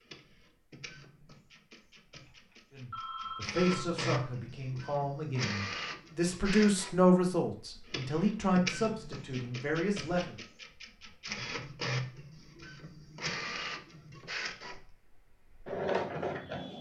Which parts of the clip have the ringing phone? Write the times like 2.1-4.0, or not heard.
2.2-3.9.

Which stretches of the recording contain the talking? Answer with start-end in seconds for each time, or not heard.
2.7-10.3.